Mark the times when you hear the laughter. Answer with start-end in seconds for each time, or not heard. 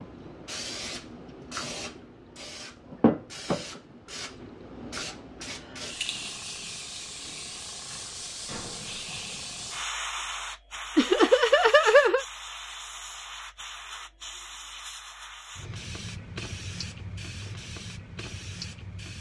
10.9-12.2.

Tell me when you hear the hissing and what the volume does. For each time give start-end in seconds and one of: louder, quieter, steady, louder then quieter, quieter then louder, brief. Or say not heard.
0.0-19.1 quieter.